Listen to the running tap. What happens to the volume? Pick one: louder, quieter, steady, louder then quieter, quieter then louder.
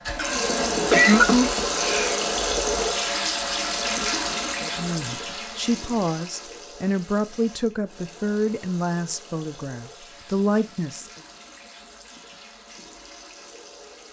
quieter.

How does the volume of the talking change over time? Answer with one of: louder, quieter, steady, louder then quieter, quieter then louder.
steady.